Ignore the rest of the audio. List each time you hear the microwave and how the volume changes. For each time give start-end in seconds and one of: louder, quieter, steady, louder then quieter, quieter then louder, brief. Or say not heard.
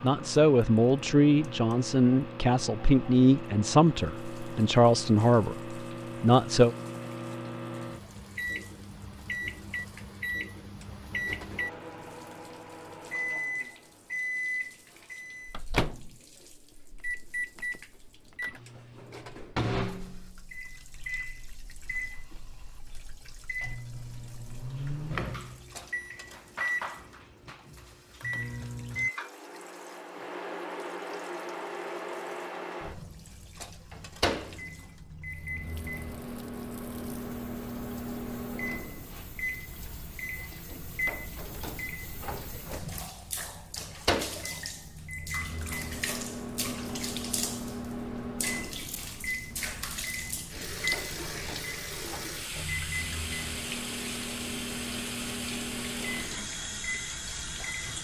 0.0-58.0 steady.